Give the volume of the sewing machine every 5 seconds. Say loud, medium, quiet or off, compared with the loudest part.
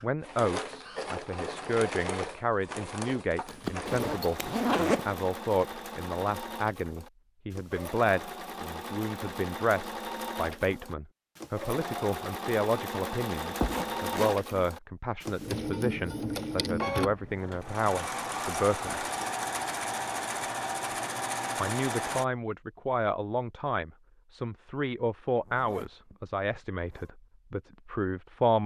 medium, medium, loud, loud, loud, off.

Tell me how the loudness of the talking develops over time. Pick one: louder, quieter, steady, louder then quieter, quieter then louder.
steady.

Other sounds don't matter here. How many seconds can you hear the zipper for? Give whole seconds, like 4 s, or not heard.
4 s.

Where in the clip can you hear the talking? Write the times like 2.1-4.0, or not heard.
0.0-19.1, 21.6-28.6.